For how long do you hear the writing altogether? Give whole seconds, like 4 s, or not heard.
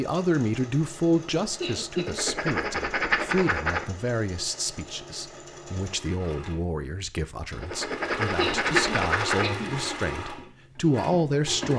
4 s.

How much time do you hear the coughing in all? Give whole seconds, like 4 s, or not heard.
2 s.